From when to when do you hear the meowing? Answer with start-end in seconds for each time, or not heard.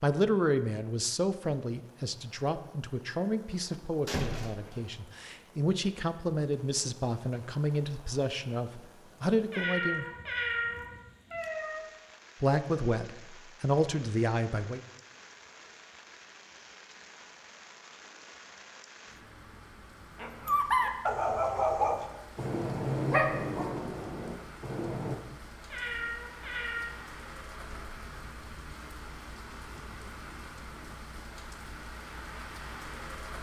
9.5-11.8, 25.7-26.9.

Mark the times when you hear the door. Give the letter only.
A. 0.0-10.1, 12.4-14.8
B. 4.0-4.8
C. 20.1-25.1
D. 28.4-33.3
B.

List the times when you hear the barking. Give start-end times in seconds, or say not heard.
20.1-25.1.